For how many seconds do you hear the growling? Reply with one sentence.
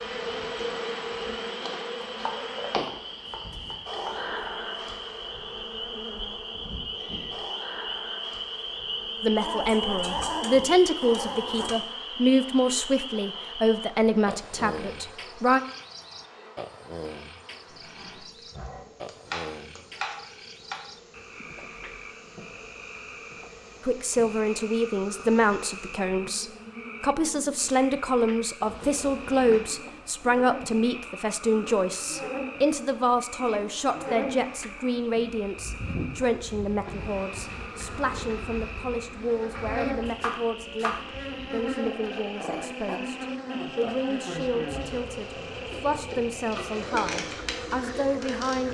You can hear the growling for 5 seconds altogether.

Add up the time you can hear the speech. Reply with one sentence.
The speech can be heard for 31 seconds in total.